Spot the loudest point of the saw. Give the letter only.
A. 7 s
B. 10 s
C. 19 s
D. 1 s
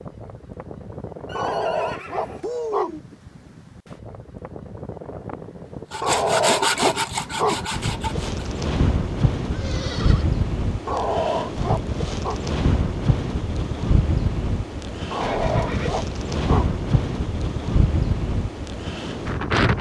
A.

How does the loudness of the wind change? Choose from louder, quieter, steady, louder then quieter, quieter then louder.
louder.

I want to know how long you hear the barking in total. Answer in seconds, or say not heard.
6 s.